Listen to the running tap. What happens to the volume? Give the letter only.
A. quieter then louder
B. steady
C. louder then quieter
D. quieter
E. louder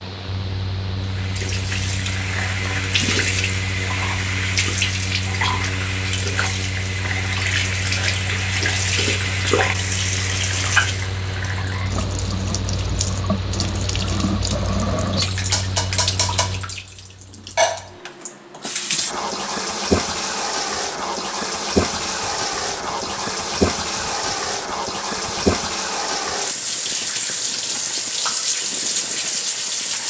B.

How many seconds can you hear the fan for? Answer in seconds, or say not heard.
30 s.